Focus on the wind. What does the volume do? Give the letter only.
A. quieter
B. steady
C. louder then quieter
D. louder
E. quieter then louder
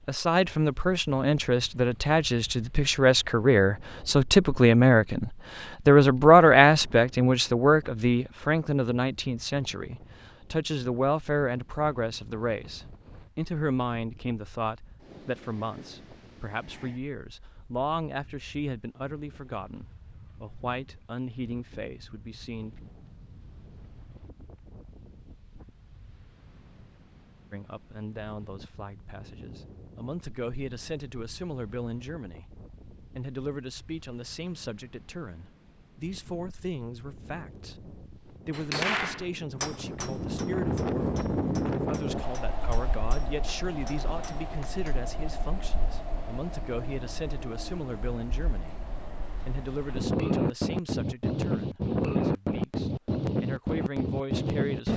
D.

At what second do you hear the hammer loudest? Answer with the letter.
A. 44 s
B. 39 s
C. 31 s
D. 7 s
B.